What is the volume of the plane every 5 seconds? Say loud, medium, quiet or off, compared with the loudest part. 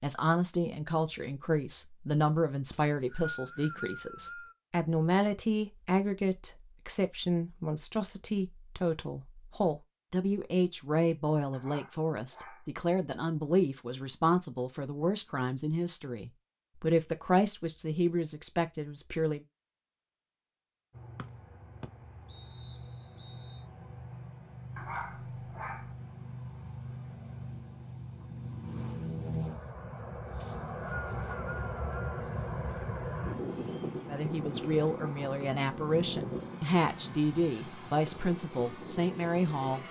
off, off, off, off, medium, loud, loud, loud.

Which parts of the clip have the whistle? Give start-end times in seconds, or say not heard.
2.7-4.5, 21.1-23.6, 30.4-32.1.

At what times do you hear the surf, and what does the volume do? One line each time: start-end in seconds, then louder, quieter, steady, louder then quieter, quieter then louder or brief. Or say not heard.
not heard.